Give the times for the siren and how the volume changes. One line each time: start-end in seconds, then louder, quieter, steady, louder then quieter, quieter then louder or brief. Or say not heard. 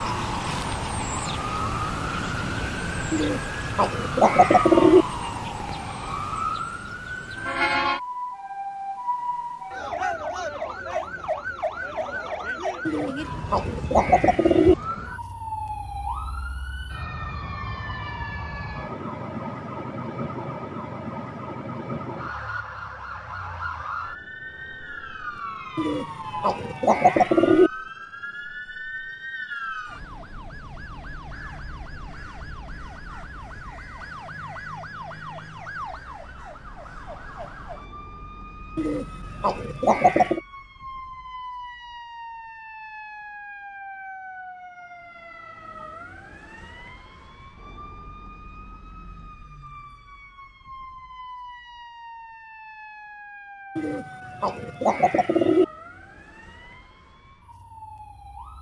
0.0-58.5 quieter.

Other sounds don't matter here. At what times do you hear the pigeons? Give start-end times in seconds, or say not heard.
3.1-5.0, 12.8-14.8, 25.8-27.7, 38.8-40.4, 53.8-55.6.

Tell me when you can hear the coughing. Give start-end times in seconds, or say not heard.
not heard.